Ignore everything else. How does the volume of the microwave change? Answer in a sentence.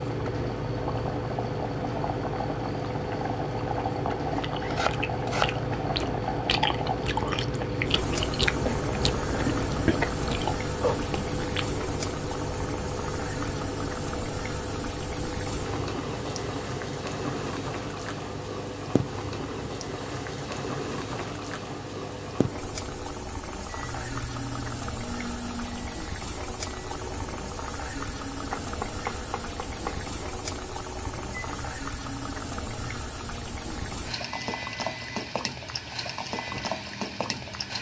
The loudness of the microwave goes down.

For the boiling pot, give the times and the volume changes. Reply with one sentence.
You can hear the boiling pot from 0.0 to 37.7 s, at a steady volume.